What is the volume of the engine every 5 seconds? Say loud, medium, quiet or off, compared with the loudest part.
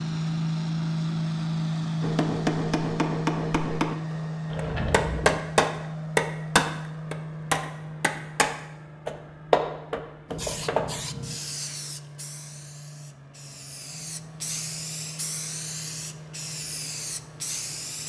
loud, medium, quiet, quiet.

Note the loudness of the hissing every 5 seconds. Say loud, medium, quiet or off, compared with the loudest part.
off, off, loud, loud.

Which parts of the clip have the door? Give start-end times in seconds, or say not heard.
4.5-5.5.